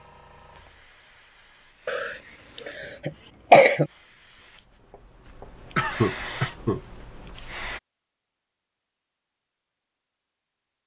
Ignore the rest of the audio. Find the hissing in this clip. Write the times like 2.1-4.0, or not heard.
0.0-7.8.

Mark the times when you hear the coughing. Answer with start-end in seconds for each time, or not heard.
1.9-3.9, 5.8-6.8.